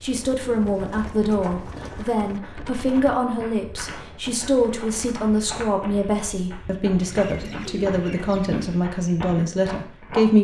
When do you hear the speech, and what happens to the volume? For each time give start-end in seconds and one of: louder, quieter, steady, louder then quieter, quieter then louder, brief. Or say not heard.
0.0-10.3 steady.